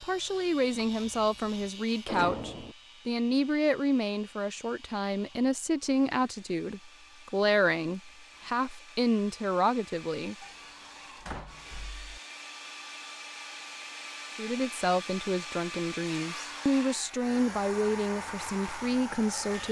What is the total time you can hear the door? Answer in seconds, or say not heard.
4 s.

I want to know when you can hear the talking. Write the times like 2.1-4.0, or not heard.
0.0-10.3, 14.3-19.6.